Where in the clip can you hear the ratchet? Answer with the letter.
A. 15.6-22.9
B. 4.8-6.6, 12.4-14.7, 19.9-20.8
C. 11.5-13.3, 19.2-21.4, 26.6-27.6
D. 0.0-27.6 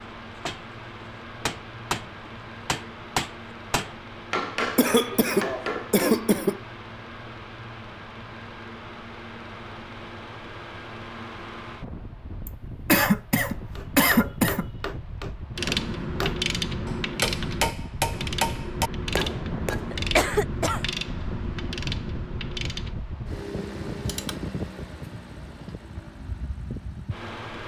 A.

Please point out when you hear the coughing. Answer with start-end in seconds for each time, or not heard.
4.8-6.6, 12.4-14.7, 19.9-20.8.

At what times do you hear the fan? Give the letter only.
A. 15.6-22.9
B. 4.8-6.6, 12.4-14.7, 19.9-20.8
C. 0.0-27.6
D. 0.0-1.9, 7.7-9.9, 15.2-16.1
C.